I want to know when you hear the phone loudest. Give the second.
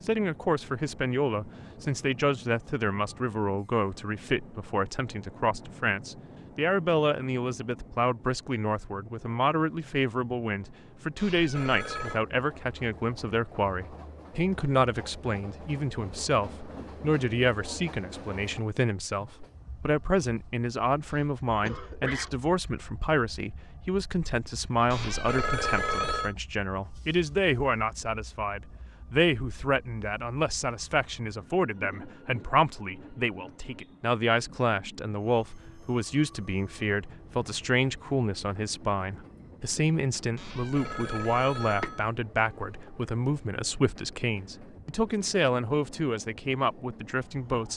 26 s.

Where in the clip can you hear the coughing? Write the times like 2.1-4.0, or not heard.
21.1-22.3.